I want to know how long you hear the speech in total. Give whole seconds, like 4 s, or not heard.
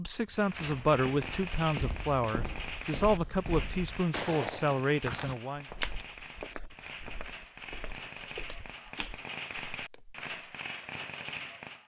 6 s.